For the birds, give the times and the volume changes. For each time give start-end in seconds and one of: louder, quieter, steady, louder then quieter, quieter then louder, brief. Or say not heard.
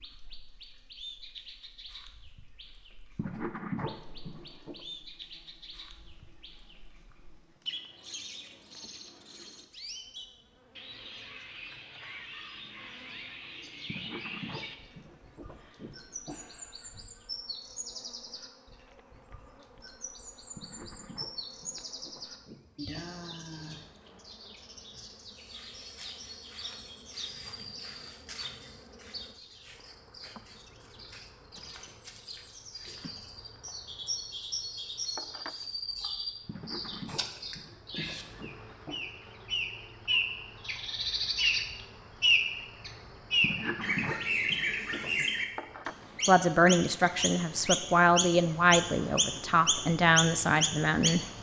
0.0-51.3 louder.